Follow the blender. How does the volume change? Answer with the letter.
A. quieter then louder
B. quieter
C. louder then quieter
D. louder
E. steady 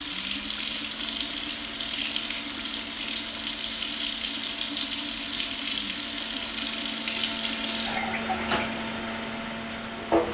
D.